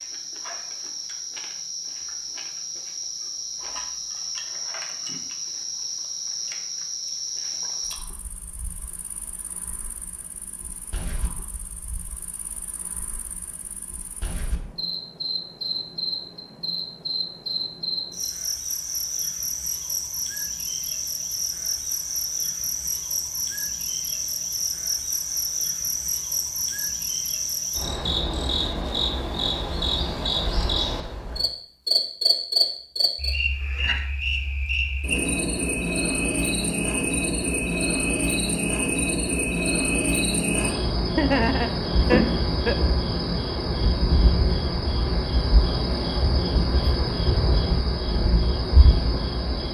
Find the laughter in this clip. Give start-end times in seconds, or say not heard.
41.1-42.8.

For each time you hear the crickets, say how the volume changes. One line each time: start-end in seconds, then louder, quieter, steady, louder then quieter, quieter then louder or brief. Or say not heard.
0.0-49.6 louder.